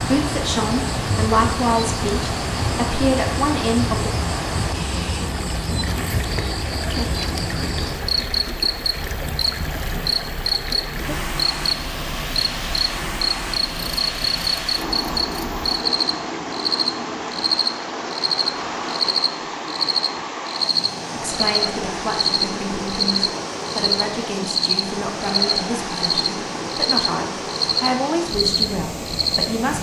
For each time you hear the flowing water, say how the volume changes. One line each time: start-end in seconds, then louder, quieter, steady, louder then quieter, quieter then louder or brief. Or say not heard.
0.0-29.7 steady.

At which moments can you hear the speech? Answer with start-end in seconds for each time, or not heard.
0.0-4.1, 21.2-29.7.